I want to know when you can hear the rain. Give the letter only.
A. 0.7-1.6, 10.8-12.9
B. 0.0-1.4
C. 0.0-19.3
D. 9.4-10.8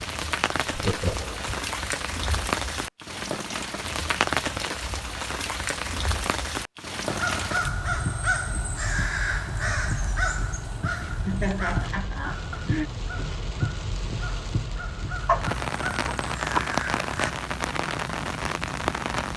C.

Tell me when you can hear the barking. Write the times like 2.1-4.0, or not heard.
15.2-16.6.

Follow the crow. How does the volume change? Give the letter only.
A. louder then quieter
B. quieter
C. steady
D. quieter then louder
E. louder
D.